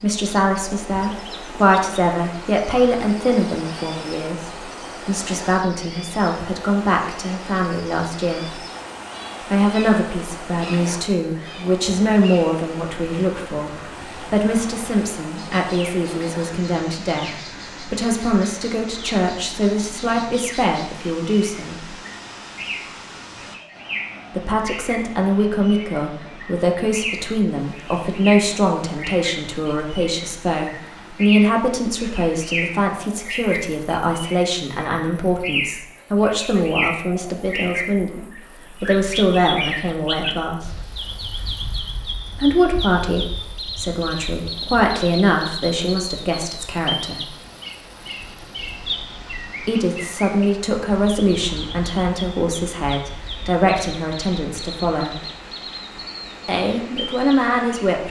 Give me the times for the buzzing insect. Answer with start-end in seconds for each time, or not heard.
not heard.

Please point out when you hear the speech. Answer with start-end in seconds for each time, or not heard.
0.0-8.6, 9.5-21.9, 24.3-40.8, 42.3-47.3, 49.5-55.2, 56.5-58.0.